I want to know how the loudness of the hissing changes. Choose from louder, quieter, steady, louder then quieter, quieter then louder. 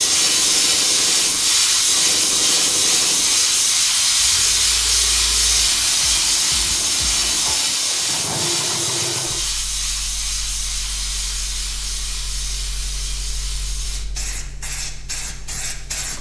quieter.